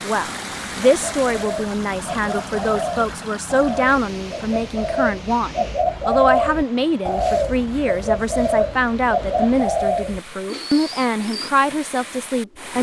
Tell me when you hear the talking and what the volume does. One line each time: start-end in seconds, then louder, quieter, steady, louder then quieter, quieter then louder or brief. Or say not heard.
0.0-12.7 steady.